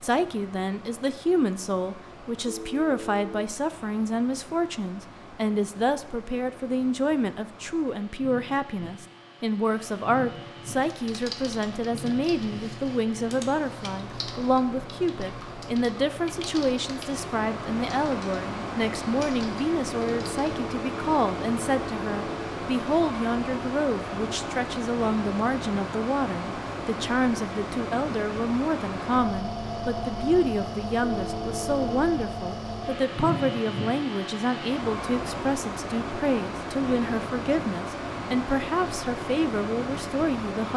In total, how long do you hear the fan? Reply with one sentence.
You can hear the fan for 41 seconds altogether.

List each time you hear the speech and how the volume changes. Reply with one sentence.
You can hear the speech from 0.0 to 40.7 s, at a steady volume.